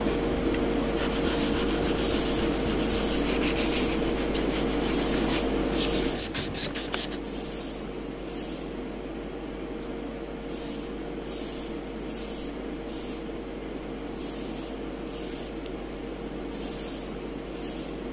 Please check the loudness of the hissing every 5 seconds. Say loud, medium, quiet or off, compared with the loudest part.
loud, medium, medium, medium.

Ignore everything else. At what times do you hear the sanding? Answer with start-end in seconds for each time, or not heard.
0.0-7.2.